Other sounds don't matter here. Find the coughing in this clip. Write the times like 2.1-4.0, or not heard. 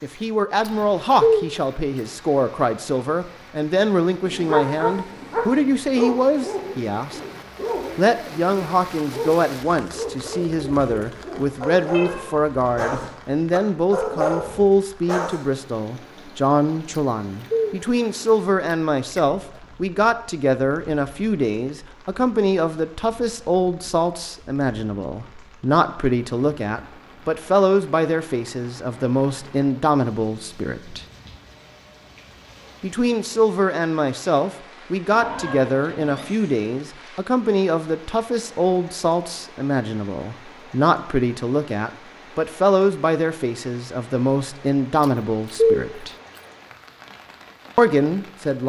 not heard.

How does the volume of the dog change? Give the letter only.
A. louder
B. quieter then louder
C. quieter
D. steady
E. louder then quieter
B.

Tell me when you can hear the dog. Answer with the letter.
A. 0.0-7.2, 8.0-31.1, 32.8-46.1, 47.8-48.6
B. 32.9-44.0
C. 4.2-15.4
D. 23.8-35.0
C.